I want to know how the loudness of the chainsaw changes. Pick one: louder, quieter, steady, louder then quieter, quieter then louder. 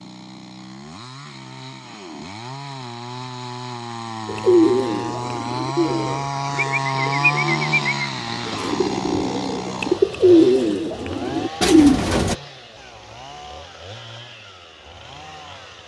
louder then quieter.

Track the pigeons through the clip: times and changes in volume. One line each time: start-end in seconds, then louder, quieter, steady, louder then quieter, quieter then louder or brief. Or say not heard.
4.2-12.3 louder.